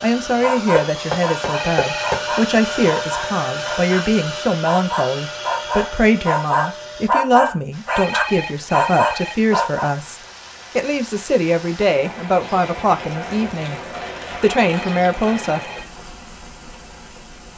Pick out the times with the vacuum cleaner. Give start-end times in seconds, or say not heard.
0.0-7.1.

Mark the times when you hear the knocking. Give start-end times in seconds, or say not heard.
0.8-2.2.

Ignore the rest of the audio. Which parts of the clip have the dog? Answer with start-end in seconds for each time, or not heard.
0.4-4.0, 4.7-9.9.